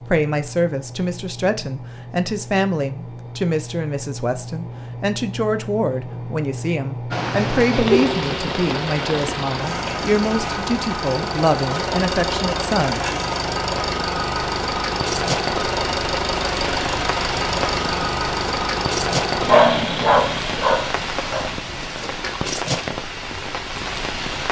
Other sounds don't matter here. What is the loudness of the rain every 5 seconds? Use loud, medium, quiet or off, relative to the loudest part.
off, loud, medium, loud, loud.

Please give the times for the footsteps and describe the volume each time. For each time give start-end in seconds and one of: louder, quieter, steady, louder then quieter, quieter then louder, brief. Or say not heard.
not heard.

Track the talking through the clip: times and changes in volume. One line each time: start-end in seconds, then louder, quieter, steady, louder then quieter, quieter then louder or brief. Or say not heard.
0.1-13.0 steady.